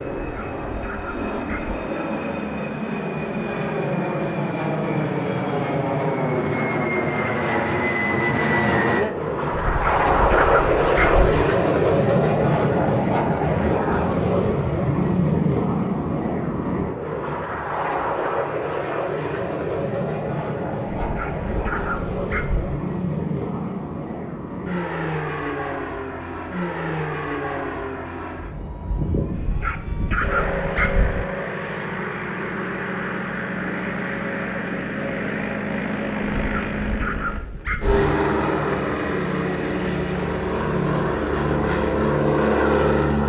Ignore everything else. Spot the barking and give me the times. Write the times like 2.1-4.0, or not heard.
0.2-1.8, 9.5-11.4, 20.9-22.8, 29.3-31.2, 36.3-38.0.